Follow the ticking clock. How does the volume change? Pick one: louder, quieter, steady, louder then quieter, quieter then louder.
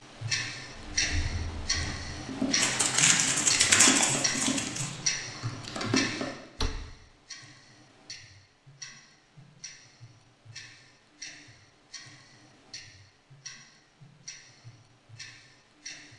quieter.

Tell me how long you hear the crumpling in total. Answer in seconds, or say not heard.
2 s.